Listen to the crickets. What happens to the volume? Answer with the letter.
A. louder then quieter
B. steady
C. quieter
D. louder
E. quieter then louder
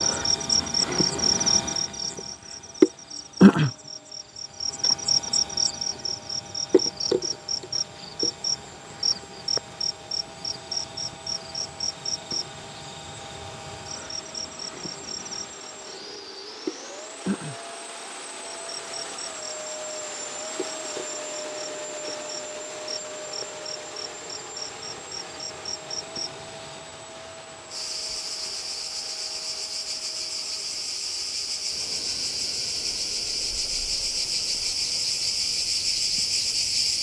E.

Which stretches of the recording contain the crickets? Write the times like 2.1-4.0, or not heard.
0.0-36.9.